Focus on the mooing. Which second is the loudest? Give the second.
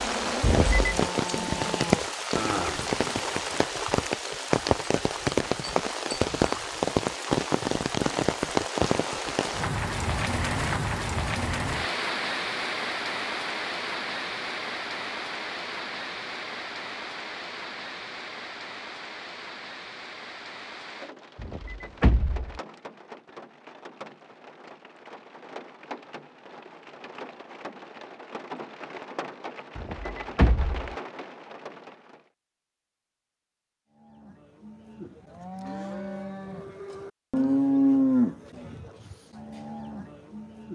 38 s.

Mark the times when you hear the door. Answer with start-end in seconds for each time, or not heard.
0.4-1.0, 21.4-22.6, 29.8-30.9.